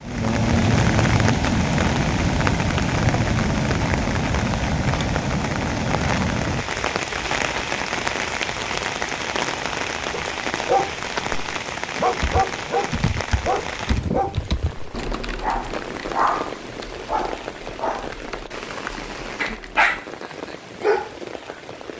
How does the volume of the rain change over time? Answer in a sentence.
The volume of the rain goes down.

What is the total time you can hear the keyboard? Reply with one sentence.
You can hear the keyboard for 8 seconds altogether.